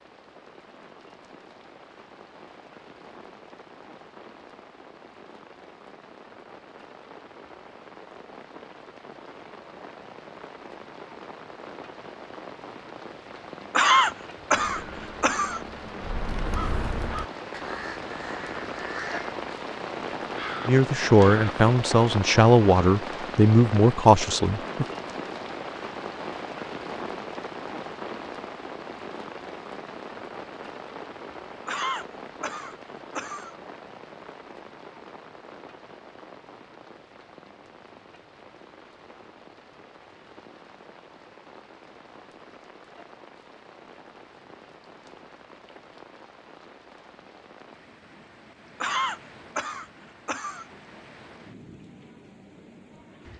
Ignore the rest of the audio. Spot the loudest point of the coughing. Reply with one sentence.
The volume of the coughing peaks at 14 seconds.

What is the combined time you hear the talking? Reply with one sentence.
The talking can be heard for 4 seconds in total.